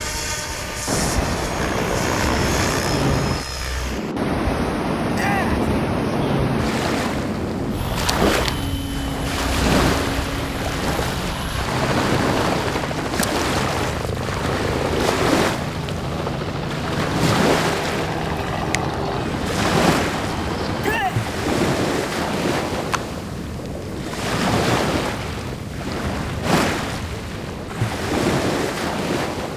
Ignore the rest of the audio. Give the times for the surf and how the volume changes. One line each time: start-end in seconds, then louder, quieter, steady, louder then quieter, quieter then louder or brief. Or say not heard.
0.0-29.5 steady.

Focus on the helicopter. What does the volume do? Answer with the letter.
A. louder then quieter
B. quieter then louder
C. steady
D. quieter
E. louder
C.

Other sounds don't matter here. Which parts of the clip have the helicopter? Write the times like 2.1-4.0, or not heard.
0.0-21.0.